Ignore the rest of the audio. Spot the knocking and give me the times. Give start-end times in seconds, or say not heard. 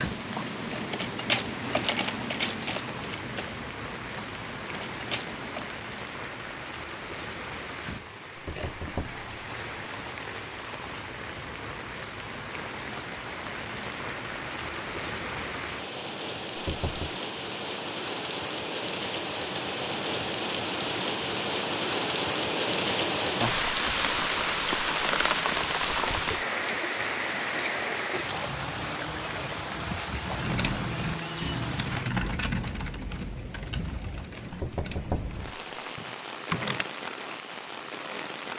8.3-9.2, 16.6-17.1, 34.5-35.4.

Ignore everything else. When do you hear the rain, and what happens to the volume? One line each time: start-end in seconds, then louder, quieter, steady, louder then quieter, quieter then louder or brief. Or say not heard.
0.0-38.5 louder then quieter.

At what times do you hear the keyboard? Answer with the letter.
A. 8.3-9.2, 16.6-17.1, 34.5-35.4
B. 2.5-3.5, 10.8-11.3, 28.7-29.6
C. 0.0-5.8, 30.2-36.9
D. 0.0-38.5
C.